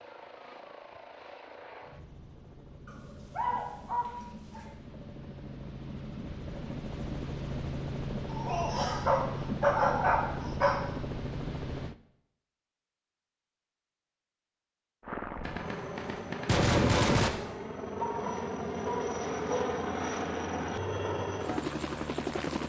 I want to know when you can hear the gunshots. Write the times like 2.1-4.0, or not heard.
15.4-17.3.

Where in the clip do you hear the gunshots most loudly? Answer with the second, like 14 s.
17 s.